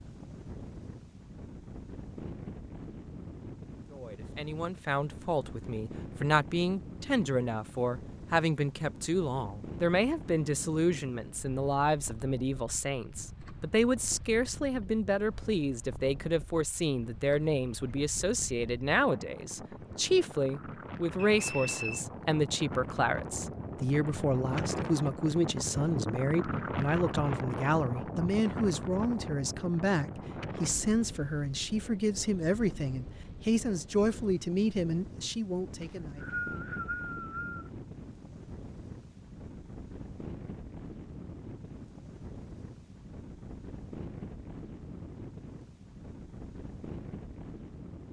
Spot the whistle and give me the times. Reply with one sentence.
The whistle can be heard from 21.1 to 22.0 s and from 35.8 to 37.7 s.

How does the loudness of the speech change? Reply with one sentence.
The volume of the speech stays about the same.